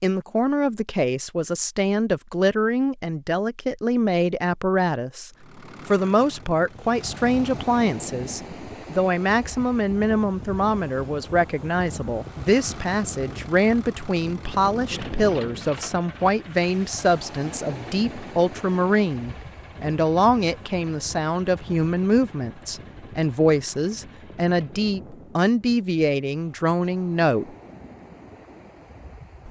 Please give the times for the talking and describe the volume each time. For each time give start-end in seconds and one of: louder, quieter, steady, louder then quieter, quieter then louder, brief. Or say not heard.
0.0-27.5 steady.